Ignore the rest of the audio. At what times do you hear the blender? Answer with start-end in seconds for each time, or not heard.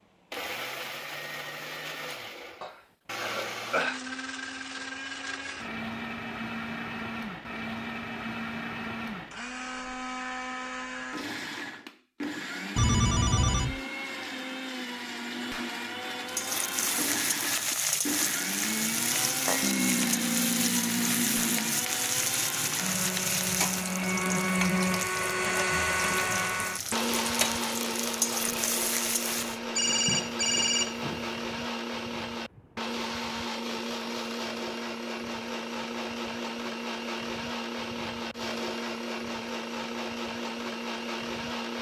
0.3-41.7.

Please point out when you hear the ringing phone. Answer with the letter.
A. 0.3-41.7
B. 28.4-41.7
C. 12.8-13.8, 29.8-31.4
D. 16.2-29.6
C.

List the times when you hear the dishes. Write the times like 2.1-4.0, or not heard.
not heard.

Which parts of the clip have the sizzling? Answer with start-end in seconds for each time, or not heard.
16.2-29.6.